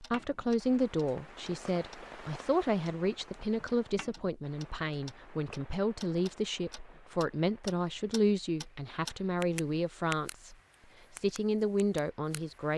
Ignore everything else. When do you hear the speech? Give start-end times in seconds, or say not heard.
0.0-10.6, 11.2-12.7.